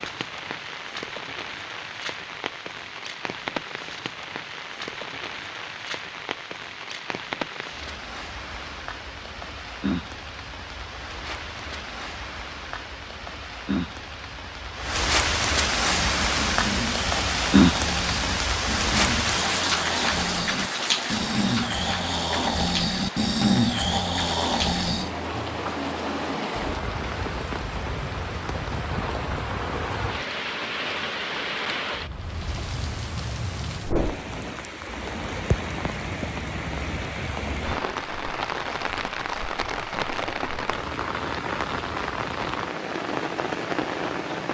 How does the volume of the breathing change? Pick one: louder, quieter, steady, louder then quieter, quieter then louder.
louder.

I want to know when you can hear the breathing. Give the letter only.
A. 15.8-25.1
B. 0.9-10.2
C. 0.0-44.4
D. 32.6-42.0
A.